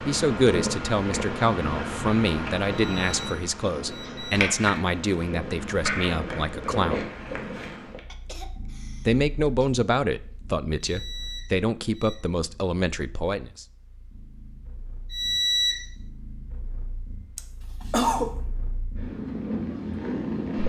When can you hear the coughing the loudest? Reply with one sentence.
The volume of the coughing peaks at 18 seconds.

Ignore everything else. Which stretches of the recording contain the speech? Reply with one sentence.
The speech can be heard from 0.0 to 7.0 s and from 9.1 to 13.7 s.